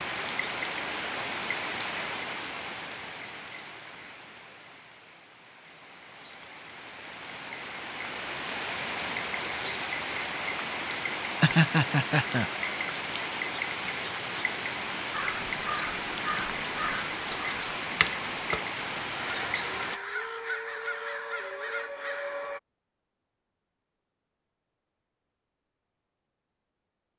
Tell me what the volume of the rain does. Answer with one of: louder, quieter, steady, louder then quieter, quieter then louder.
quieter then louder.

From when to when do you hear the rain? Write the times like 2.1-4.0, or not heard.
0.0-20.0.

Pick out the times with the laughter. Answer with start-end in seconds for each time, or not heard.
11.4-12.5.